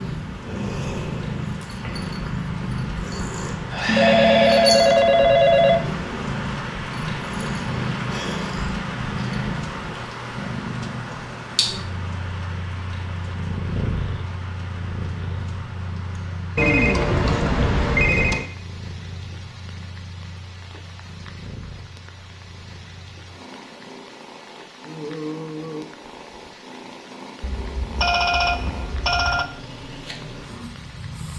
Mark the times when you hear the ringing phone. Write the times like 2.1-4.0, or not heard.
3.9-5.8, 16.6-18.4, 27.4-29.4.